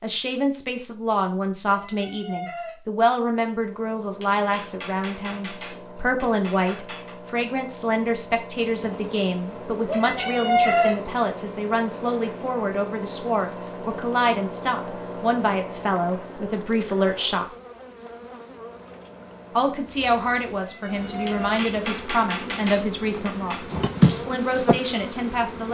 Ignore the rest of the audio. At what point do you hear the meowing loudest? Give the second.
11 s.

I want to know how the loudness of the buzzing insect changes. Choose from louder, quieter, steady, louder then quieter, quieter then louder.
louder.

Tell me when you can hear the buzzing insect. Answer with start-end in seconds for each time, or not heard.
8.6-25.6.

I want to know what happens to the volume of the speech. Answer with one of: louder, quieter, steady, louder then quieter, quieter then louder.
steady.